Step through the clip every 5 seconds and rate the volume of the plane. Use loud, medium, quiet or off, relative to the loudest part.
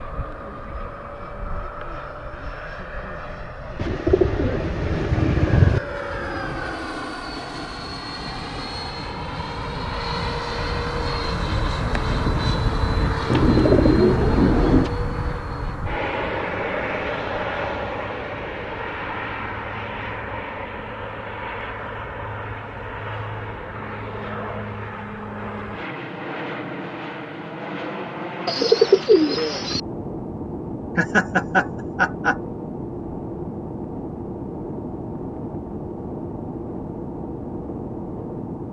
medium, medium, loud, loud, medium, medium, medium, medium.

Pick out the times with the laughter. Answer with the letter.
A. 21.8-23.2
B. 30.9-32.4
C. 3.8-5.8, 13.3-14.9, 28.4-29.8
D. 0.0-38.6
B.